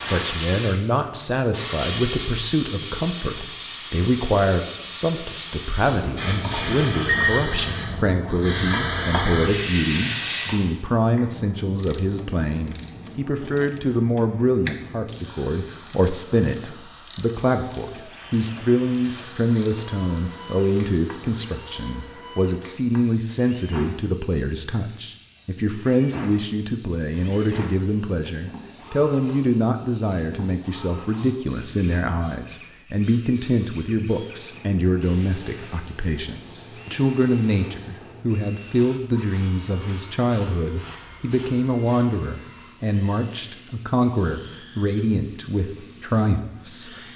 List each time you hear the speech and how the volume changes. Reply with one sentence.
The speech can be heard from 0.0 to 47.0 s, at a steady volume.